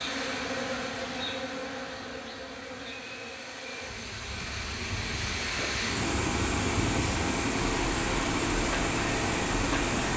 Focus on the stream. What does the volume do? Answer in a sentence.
The volume of the stream goes up.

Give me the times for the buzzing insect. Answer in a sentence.
You can hear the buzzing insect from 0.0 to 10.1 s.